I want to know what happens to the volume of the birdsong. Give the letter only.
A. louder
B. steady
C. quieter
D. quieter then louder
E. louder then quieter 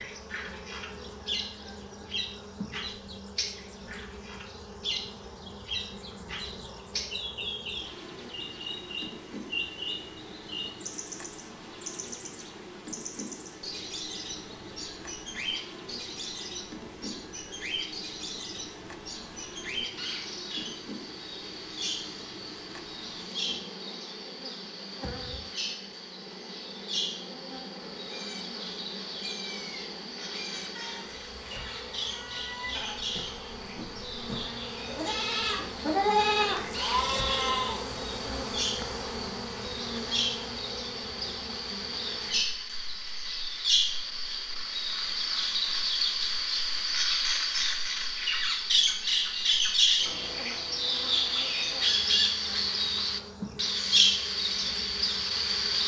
A.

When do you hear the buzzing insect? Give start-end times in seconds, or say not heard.
0.0-55.8.